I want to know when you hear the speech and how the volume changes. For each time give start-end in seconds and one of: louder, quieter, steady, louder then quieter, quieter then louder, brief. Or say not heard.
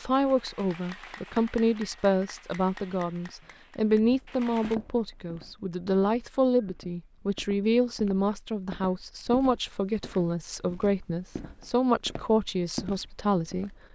0.0-13.8 steady.